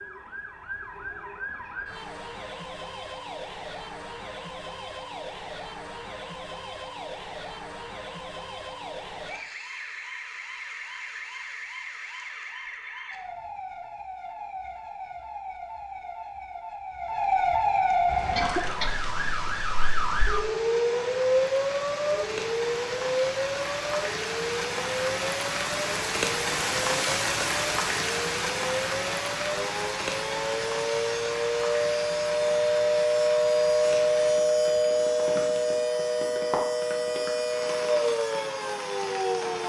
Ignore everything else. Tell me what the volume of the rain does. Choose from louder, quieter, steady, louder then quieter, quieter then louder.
louder then quieter.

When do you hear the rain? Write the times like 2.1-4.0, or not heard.
18.0-39.6.